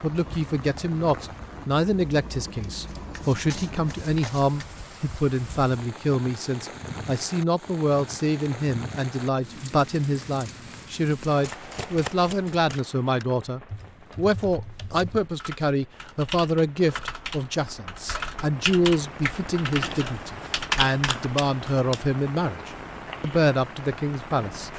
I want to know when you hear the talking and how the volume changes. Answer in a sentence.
You can hear the talking from 0.0 to 24.7 s, at a steady volume.